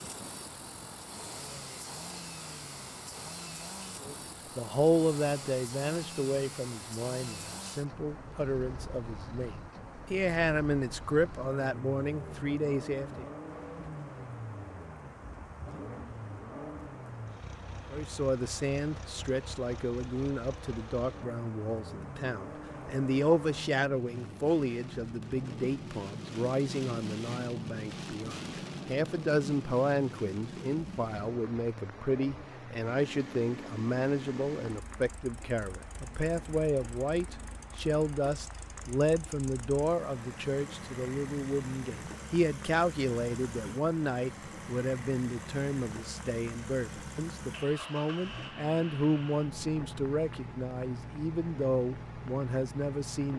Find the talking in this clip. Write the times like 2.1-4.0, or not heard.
4.0-13.2, 17.9-53.3.